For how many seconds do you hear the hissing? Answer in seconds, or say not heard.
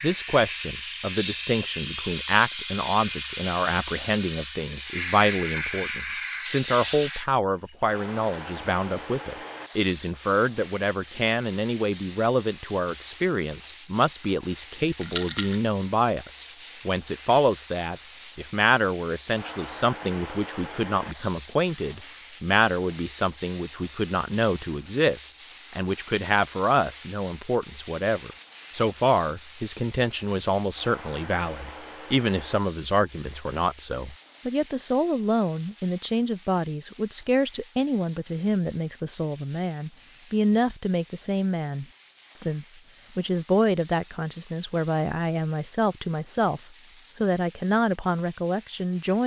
49 s.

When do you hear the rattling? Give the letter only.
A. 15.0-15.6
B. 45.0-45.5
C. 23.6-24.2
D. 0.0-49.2
A.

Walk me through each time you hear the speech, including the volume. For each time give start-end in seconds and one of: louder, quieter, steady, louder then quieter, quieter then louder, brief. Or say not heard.
0.0-49.2 steady.